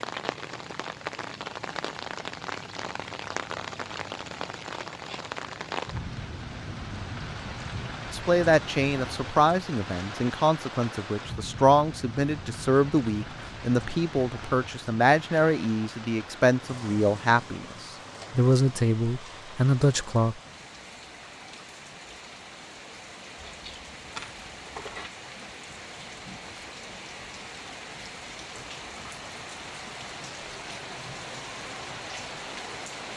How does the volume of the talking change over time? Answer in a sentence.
The volume of the talking stays about the same.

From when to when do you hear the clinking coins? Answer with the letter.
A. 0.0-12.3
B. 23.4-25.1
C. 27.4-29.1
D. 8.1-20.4
B.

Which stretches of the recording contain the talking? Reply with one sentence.
The talking can be heard from 8.1 to 20.4 s.